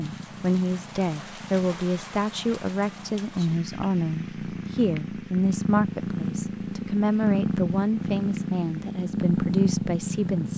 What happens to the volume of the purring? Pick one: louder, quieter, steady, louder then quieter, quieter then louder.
louder.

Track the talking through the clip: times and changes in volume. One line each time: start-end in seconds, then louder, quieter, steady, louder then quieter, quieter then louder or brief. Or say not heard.
0.0-10.5 steady.